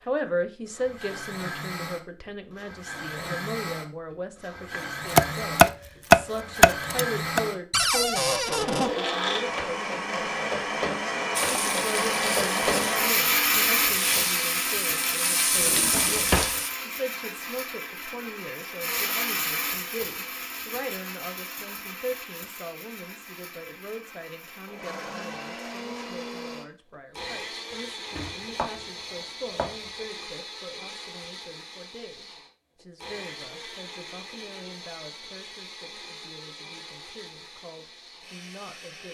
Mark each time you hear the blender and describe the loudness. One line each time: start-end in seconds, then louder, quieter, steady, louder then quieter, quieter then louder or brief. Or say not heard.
0.0-39.0 louder then quieter.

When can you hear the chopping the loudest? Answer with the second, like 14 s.
6 s.